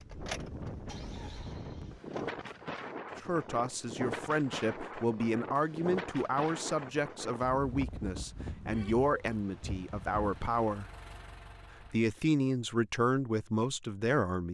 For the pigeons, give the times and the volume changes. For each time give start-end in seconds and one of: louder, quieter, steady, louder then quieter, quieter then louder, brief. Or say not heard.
not heard.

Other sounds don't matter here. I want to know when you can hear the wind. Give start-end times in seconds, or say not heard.
0.0-10.7.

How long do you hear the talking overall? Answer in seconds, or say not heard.
10 s.